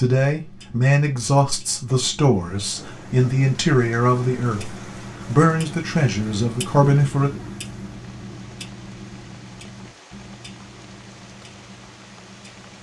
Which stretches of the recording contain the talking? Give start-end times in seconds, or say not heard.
0.0-7.3.